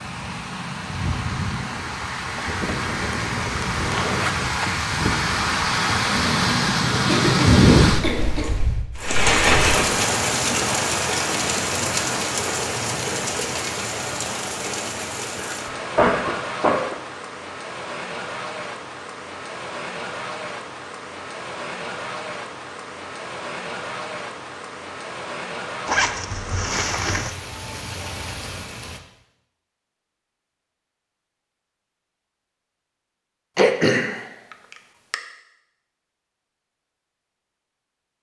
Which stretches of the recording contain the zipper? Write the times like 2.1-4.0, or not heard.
3.9-4.7, 25.9-27.4.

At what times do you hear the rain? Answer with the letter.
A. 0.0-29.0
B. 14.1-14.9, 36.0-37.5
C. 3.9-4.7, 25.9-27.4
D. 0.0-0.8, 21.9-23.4
A.